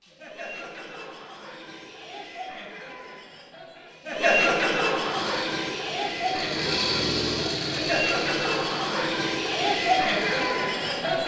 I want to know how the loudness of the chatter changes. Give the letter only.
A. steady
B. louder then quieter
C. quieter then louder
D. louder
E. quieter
D.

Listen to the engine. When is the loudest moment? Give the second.
7 s.